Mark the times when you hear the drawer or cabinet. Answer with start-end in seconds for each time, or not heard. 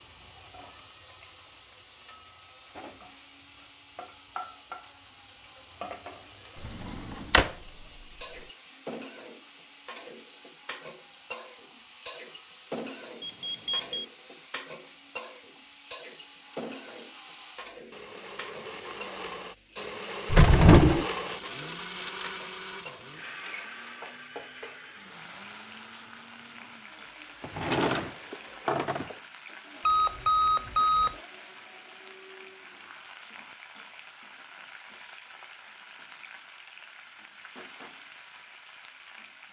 6.6-7.5, 20.3-21.1, 27.4-29.2.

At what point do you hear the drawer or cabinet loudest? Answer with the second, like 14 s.
21 s.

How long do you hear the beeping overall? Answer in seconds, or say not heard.
2 s.